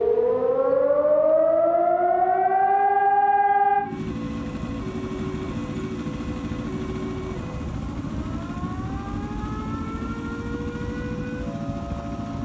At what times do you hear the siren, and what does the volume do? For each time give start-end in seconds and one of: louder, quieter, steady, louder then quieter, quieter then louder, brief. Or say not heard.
0.0-12.3 quieter.